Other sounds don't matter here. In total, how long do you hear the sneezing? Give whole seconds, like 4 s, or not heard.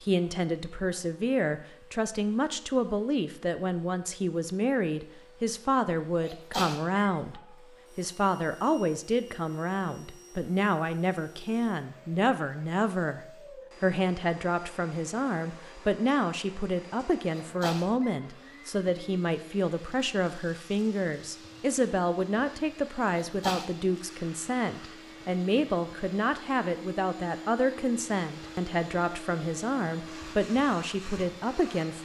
2 s.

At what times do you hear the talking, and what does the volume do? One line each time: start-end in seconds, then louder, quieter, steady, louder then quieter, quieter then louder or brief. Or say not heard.
0.0-31.9 steady.